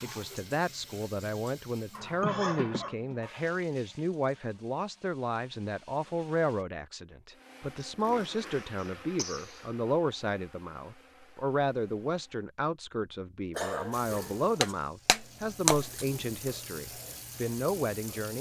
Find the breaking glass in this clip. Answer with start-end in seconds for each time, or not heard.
14.6-16.1.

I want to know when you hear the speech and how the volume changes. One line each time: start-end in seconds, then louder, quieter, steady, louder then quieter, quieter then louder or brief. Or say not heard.
0.0-18.3 steady.